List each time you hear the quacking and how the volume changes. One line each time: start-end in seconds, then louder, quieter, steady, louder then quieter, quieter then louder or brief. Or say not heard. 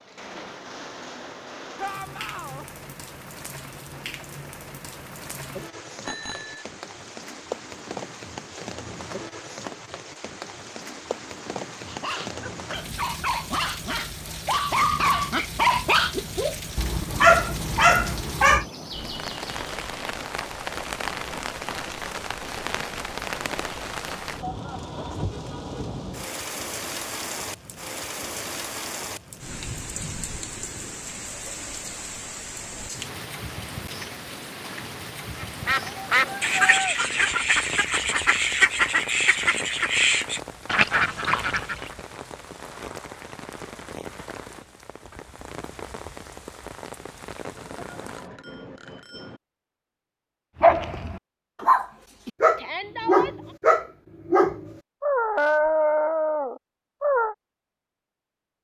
35.4-42.0 steady.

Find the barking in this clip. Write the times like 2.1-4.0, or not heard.
11.8-18.6, 50.6-57.4.